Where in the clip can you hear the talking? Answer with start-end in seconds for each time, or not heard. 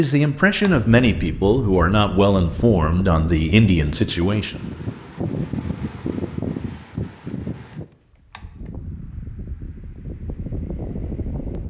0.0-4.6.